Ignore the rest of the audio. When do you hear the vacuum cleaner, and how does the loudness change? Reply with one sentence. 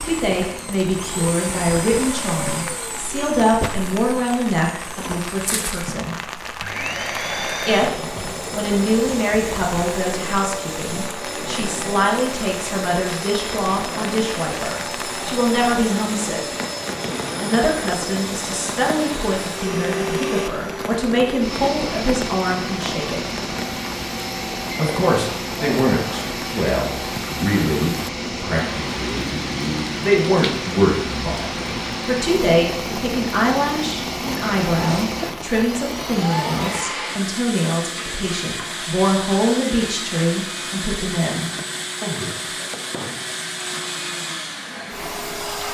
The vacuum cleaner can be heard from 0.0 to 45.6 s, at a steady volume.